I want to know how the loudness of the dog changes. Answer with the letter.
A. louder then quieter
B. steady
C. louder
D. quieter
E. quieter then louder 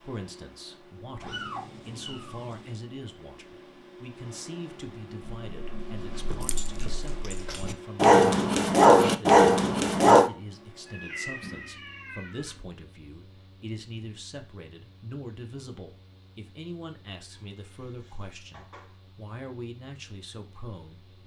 C.